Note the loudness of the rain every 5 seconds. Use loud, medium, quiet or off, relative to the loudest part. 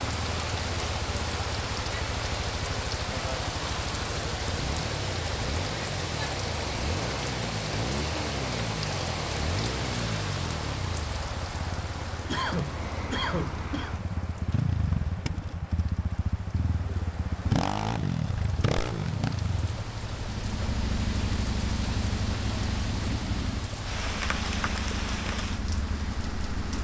loud, loud, medium, medium, loud, medium.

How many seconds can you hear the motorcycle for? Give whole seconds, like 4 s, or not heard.
27 s.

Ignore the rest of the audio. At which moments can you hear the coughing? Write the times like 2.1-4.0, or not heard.
12.2-13.9.